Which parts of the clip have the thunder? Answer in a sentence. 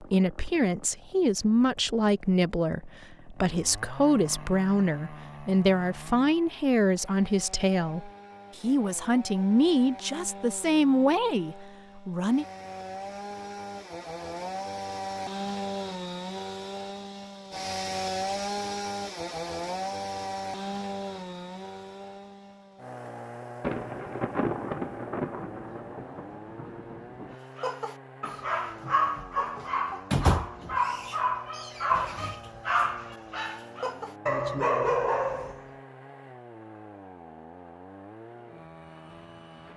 The thunder can be heard from 23.6 to 27.4 s.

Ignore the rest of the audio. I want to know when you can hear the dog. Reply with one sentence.
The dog can be heard from 27.6 to 35.6 s.